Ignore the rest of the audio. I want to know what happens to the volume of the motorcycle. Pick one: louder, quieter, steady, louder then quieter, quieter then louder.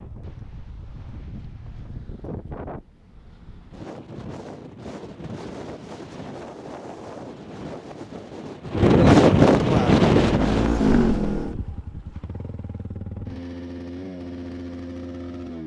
quieter then louder.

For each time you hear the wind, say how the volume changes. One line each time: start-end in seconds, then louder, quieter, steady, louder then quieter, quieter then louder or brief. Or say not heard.
0.0-11.3 louder.